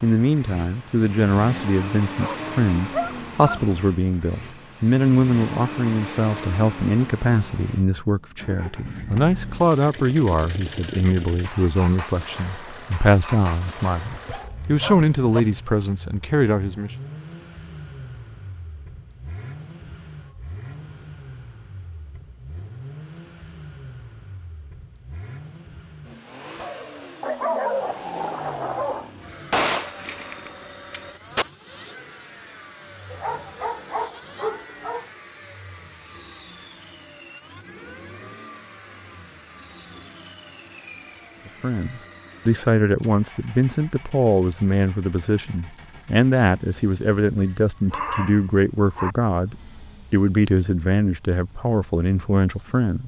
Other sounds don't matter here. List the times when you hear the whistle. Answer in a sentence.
The whistle can't be heard in this clip.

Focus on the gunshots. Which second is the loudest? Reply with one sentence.
The loudest moment of the gunshots is at 30 seconds.